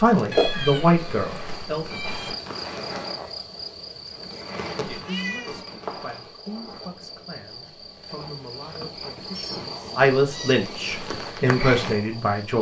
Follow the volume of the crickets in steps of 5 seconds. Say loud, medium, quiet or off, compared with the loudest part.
loud, medium, loud.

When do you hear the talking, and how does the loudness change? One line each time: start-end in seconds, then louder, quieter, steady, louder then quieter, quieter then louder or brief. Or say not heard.
0.0-1.9 brief
5.0-12.5 louder.